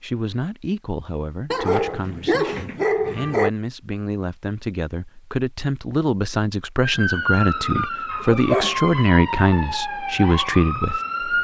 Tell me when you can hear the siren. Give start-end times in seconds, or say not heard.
6.8-11.3.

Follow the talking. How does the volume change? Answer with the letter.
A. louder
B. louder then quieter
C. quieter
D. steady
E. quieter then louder
A.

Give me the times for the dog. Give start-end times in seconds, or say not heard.
1.5-3.5, 8.1-9.0.